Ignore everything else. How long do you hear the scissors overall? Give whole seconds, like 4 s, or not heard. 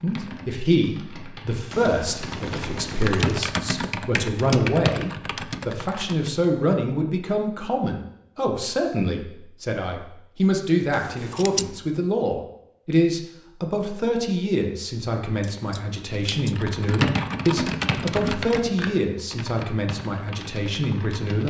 4 s.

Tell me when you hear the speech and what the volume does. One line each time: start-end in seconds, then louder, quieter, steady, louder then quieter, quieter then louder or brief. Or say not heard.
0.0-21.4 steady.